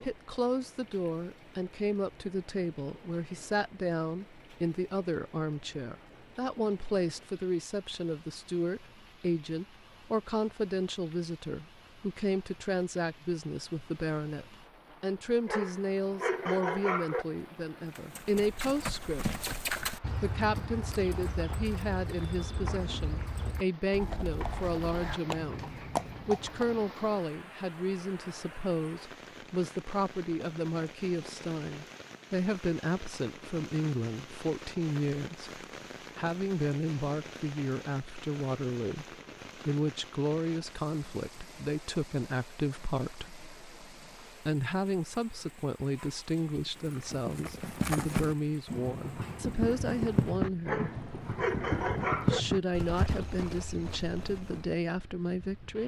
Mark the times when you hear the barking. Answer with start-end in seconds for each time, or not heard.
15.4-17.2, 50.6-52.4.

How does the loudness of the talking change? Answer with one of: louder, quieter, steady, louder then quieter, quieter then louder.
steady.